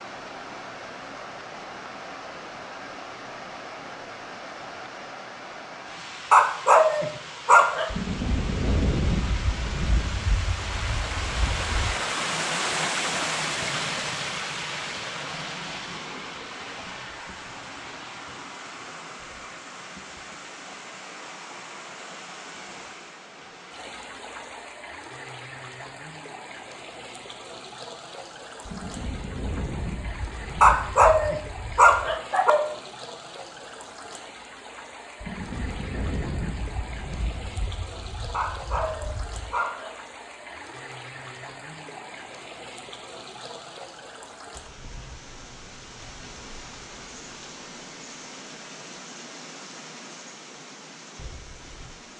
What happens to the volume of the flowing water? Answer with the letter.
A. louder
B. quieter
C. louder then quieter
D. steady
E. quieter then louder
C.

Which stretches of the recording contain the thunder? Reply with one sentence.
You can hear the thunder from 7.9 to 11.7 s, from 28.6 to 32.2 s and from 35.2 to 39.5 s.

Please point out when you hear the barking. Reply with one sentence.
The barking can be heard from 6.3 to 7.9 s, from 30.6 to 32.6 s and from 38.3 to 40.0 s.